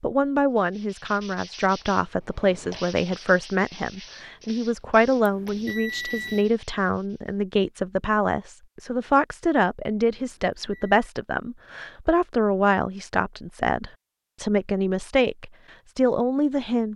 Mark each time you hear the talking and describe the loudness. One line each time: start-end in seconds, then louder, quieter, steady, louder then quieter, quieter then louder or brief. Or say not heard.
0.0-16.9 steady.